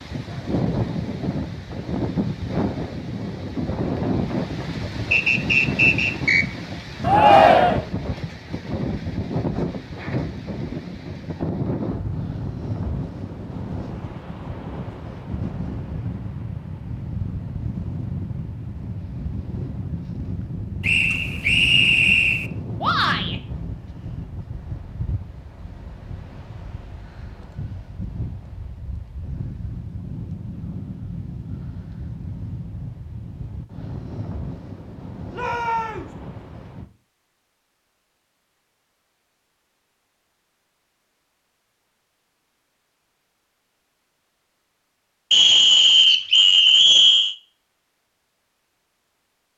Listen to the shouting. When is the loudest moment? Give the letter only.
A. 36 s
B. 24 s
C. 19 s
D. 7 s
D.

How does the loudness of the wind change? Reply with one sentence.
The loudness of the wind goes down.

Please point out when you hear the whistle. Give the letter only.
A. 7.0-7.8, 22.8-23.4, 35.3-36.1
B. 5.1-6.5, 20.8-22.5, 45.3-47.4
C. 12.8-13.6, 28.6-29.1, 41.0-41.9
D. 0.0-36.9
B.